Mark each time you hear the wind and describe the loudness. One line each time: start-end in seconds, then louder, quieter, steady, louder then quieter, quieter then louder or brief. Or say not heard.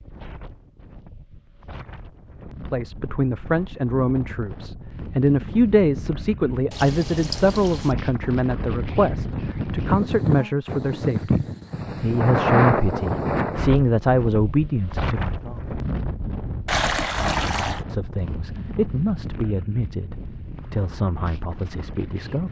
0.0-22.4 louder then quieter.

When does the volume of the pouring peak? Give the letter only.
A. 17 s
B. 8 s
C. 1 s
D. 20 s
A.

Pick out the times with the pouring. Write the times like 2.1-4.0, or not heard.
6.7-8.0, 16.6-17.8.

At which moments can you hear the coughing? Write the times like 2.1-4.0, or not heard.
not heard.